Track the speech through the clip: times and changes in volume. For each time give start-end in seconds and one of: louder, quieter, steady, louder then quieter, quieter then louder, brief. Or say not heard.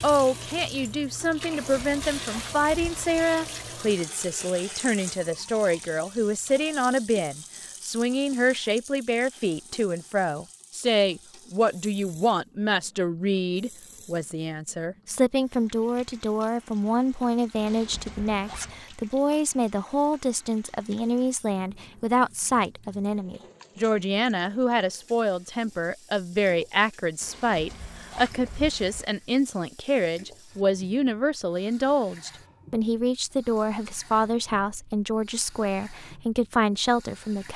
0.0-37.5 steady.